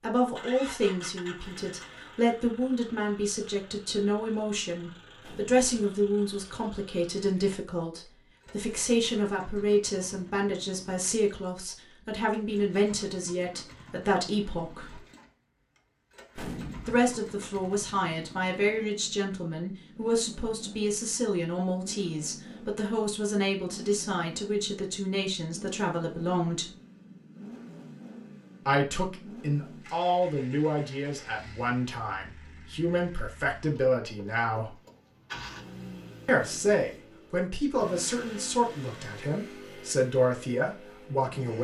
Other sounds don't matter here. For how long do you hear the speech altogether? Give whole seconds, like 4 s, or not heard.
36 s.